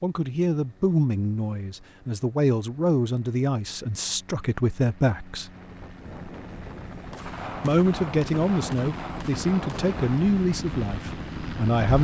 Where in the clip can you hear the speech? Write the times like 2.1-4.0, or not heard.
0.0-5.5, 7.6-11.9.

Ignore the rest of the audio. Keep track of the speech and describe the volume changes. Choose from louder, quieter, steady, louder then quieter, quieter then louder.
steady.